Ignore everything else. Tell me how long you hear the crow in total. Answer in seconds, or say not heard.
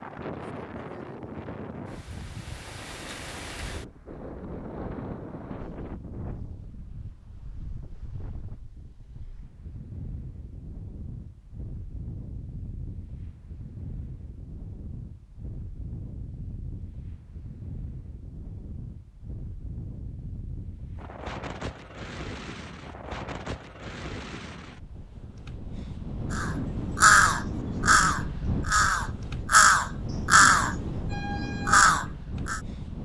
6 s.